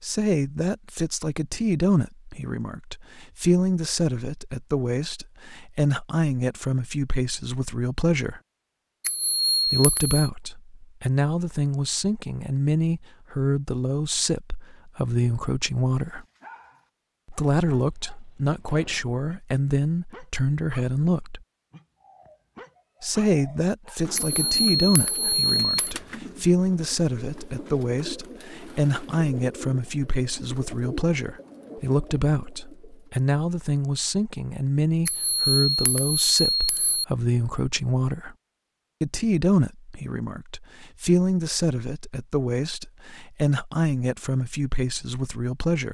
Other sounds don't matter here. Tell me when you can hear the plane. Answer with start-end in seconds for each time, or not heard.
not heard.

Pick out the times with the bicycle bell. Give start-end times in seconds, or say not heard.
9.0-10.3, 24.1-25.9, 35.0-37.0.